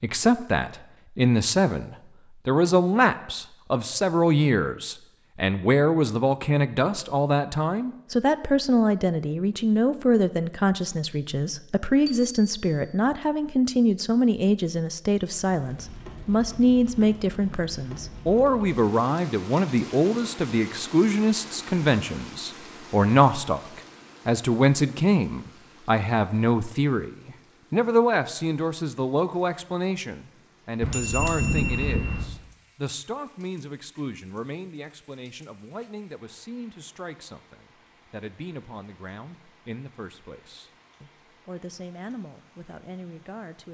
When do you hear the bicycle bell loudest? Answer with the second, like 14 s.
32 s.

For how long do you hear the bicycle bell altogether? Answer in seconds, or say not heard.
2 s.